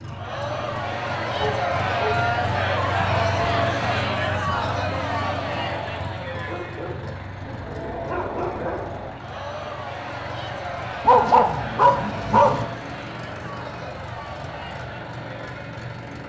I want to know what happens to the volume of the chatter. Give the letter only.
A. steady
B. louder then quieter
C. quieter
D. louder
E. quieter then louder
C.